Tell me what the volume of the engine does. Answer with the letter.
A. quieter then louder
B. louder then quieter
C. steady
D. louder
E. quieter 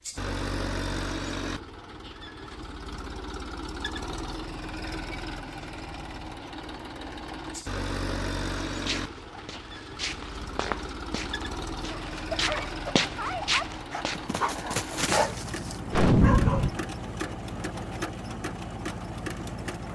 C.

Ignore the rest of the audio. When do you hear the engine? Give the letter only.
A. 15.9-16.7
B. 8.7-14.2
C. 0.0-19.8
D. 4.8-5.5
C.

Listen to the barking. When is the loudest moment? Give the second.
15 s.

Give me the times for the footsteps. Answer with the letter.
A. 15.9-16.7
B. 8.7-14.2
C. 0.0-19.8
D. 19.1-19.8
B.